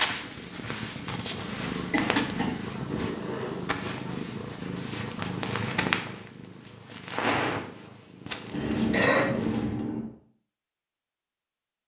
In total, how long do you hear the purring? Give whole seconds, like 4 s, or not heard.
10 s.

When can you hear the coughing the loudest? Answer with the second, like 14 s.
9 s.